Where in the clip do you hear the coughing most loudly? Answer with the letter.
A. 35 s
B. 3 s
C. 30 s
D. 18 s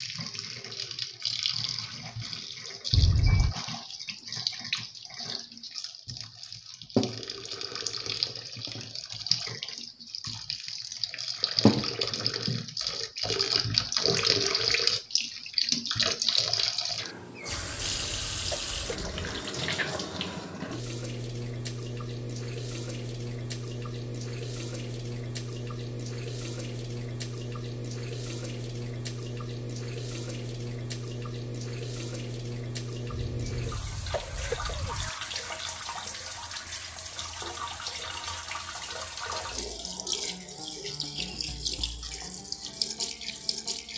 B.